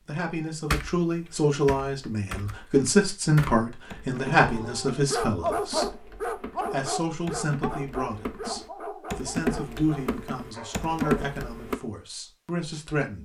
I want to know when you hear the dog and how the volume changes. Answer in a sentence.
The dog can be heard from 4.4 to 11.3 s, getting quieter.